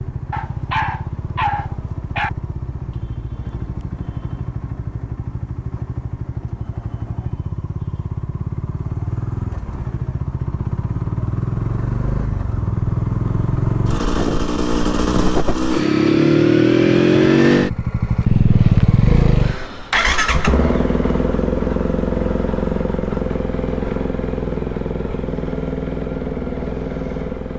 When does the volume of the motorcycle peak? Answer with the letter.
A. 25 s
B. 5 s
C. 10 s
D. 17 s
D.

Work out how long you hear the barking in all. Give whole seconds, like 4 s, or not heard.
2 s.